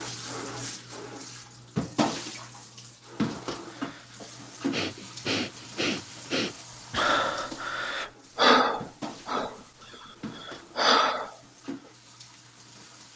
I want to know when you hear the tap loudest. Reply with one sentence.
The volume of the tap peaks at 2 seconds.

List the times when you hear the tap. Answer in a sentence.
You can hear the tap from 0.0 to 13.1 s.